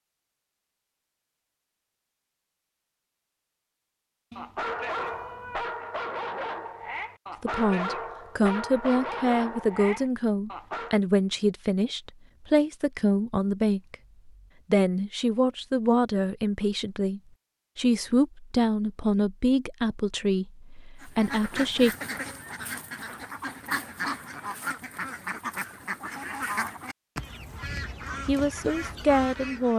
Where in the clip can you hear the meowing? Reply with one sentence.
You can hear the meowing from 4.3 to 5.6 s.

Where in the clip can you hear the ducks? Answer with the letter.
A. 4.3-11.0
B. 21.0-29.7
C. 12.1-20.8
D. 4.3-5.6
B.